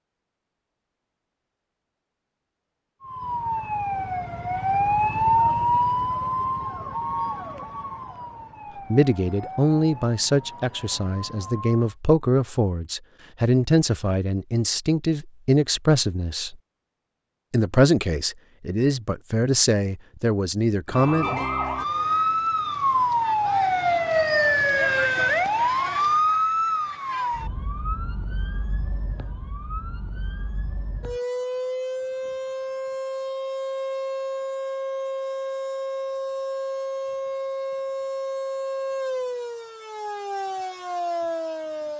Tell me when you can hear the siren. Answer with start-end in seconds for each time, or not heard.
3.0-11.9, 20.9-41.9.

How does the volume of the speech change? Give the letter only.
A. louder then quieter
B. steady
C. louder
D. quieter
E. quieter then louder
B.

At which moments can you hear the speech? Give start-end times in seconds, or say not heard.
8.9-16.6, 17.5-21.4.